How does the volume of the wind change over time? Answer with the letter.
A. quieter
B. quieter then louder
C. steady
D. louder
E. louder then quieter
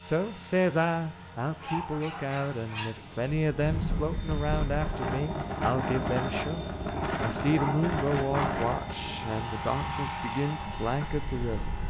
A.